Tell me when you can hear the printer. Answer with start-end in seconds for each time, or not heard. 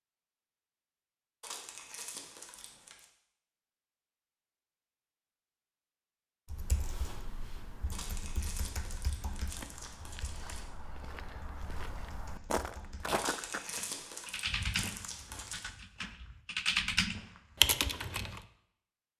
not heard.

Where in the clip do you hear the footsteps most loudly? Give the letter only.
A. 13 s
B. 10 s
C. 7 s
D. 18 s
A.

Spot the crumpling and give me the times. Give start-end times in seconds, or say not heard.
1.4-3.0, 7.9-10.6, 13.2-15.7.